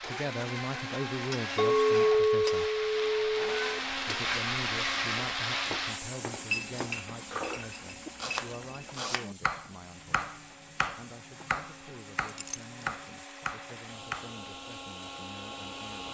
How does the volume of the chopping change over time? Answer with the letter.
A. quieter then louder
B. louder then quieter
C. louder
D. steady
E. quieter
D.